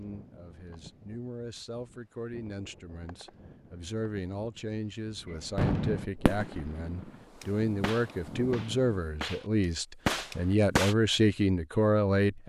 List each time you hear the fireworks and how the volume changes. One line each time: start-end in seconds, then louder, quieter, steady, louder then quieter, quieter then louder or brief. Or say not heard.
5.3-10.9 quieter then louder.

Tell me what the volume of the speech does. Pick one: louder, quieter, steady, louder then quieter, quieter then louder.
louder.